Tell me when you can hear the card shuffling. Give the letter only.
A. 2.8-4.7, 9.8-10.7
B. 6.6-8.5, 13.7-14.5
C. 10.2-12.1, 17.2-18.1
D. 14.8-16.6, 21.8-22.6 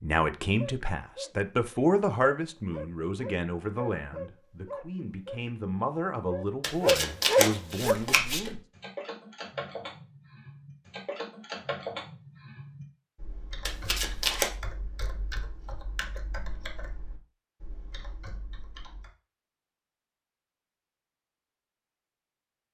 B.